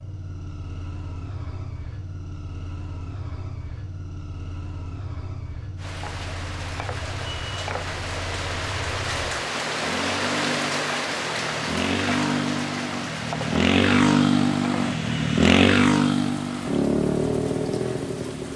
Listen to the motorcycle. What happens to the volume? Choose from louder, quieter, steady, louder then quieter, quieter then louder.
louder.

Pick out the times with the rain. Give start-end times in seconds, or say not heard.
5.8-18.5.